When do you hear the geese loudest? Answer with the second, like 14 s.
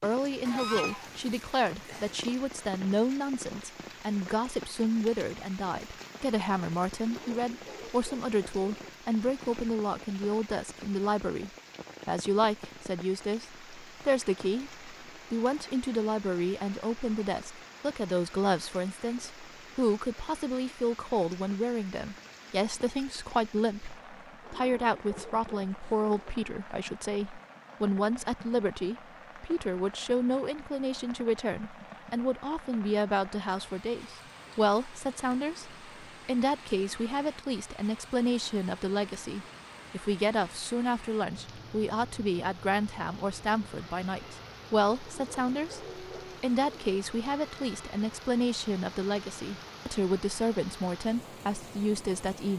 1 s.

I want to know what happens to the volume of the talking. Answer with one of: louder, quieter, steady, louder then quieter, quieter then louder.
steady.